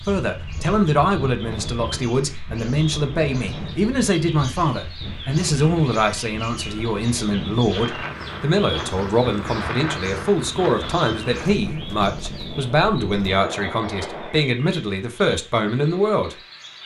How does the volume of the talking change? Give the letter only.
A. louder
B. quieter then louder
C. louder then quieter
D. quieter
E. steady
E.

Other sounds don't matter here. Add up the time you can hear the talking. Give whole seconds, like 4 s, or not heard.
16 s.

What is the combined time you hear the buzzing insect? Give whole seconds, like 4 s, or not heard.
not heard.